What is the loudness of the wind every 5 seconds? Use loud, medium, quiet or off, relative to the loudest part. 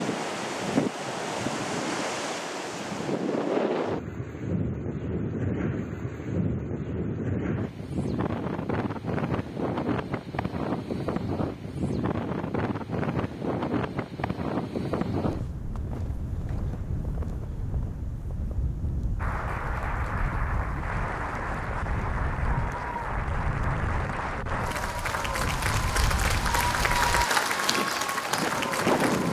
loud, loud, loud, medium, medium, loud.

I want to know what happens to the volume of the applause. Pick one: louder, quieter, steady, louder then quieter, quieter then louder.
louder.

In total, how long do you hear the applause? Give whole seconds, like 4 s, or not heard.
10 s.